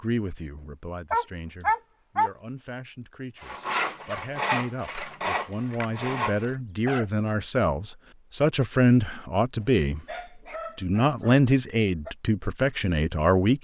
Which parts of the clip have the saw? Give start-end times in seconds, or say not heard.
3.4-6.5.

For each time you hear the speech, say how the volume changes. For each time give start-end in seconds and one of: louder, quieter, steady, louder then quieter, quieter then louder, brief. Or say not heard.
0.0-10.0 louder
10.8-13.5 brief.